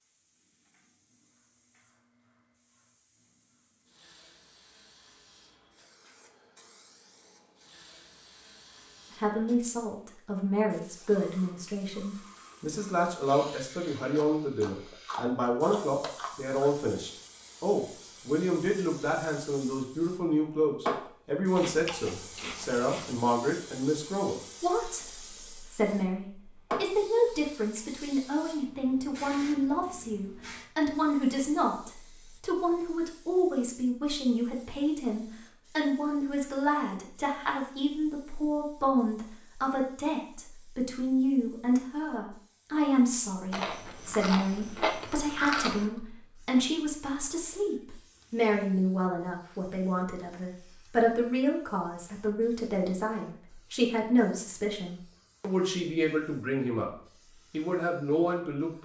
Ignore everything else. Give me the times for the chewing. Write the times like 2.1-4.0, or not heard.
13.9-16.8, 21.6-23.2, 43.5-45.9.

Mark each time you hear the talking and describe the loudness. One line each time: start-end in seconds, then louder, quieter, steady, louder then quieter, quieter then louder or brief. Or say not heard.
9.2-56.9 steady
57.5-58.7 brief.